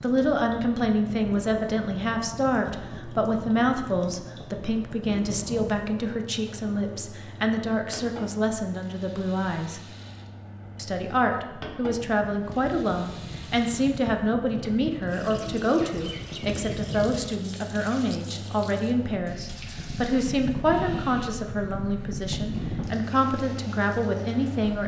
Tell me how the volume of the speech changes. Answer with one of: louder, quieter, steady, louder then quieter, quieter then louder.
steady.